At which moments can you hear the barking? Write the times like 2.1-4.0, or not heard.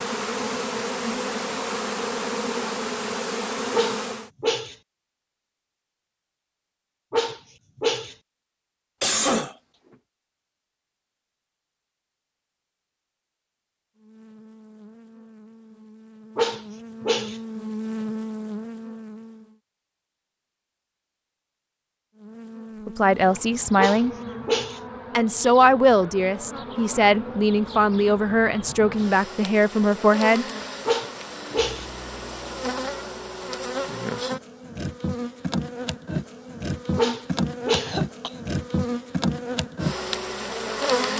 3.7-4.8, 7.1-8.2, 16.4-17.4, 23.8-24.8, 30.9-31.9, 37.0-38.0.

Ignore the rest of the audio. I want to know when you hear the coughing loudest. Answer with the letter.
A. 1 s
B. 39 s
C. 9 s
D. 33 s
C.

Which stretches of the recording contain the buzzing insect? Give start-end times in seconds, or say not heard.
0.0-4.3, 13.9-19.6, 22.1-41.1.